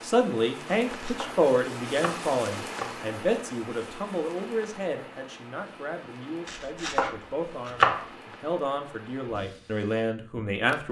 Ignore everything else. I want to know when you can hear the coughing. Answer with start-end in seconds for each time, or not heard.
not heard.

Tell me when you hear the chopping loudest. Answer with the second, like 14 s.
8 s.